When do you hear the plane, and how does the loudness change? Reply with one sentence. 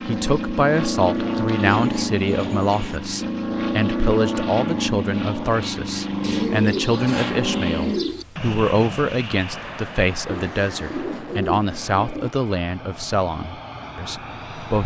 You can hear the plane from 0.0 to 14.8 s, getting quieter.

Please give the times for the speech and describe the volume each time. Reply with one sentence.
You can hear the speech from 0.1 to 14.8 s, at a steady volume.